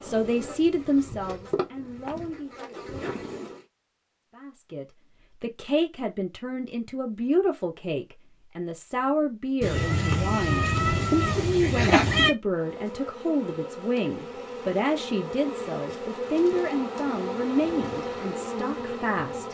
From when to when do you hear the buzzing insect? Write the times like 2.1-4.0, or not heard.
0.0-3.6, 12.4-19.4.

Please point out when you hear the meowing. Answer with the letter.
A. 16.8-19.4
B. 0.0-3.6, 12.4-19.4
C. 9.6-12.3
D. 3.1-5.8
C.